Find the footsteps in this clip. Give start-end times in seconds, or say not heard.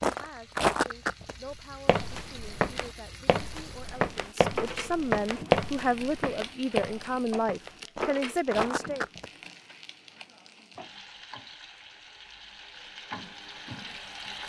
0.0-9.2.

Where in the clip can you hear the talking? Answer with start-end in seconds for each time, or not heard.
0.0-9.1.